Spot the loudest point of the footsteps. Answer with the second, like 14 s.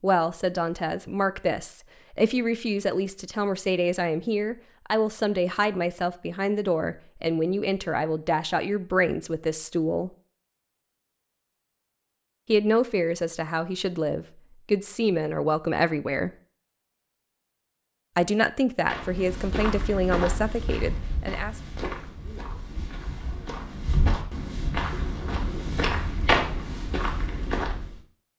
26 s.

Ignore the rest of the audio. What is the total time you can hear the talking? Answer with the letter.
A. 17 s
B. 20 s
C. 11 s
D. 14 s
A.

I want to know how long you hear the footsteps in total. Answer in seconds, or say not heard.
9 s.